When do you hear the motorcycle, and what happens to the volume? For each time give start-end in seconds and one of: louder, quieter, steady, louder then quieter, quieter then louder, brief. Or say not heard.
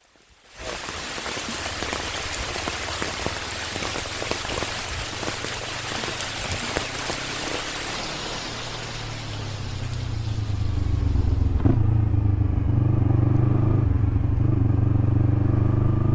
1.8-16.1 louder.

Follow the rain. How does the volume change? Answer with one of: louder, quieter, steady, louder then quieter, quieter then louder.
quieter.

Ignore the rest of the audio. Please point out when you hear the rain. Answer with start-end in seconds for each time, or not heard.
0.0-11.8.